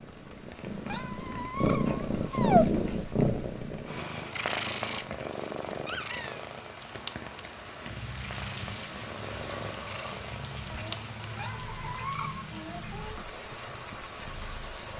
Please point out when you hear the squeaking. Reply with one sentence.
The squeaking can be heard from 0.8 to 2.6 s, from 5.8 to 6.4 s and from 11.3 to 12.4 s.